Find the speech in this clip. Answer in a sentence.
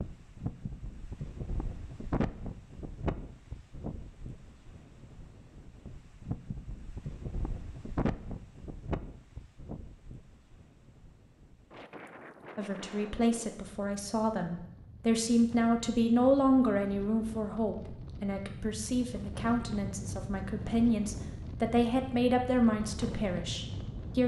You can hear the speech from 12.6 to 24.2 s.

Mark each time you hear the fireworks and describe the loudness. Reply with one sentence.
The fireworks can't be heard in this clip.